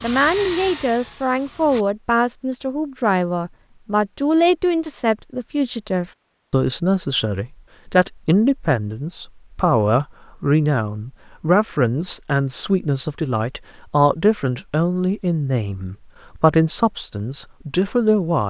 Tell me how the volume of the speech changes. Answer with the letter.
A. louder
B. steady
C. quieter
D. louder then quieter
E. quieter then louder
B.